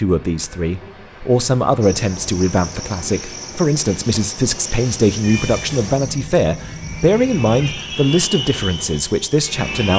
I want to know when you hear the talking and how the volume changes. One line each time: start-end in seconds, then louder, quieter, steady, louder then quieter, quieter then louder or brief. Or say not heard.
0.0-9.9 steady.